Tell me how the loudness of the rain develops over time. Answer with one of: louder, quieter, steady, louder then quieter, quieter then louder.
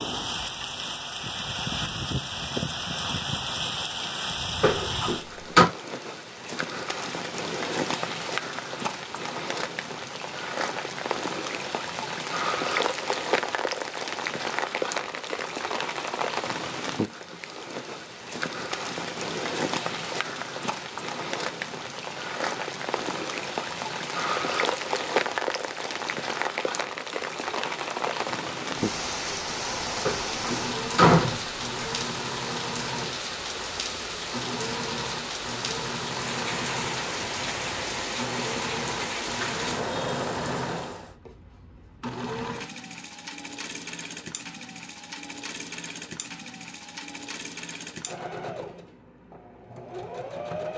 steady.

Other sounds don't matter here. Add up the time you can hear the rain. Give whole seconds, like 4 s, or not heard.
41 s.